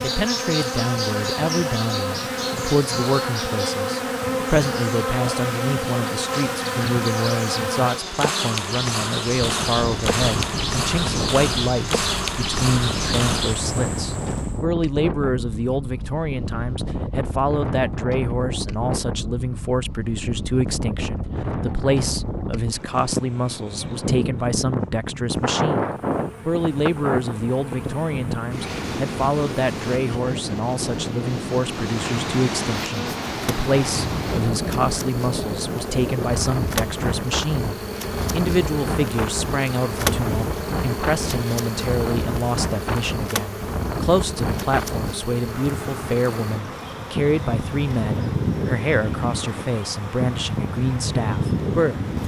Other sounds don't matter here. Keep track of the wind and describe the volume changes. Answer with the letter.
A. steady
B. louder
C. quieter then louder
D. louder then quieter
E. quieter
A.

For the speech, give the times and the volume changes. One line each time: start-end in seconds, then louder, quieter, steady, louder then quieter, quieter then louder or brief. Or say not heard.
0.0-52.0 steady.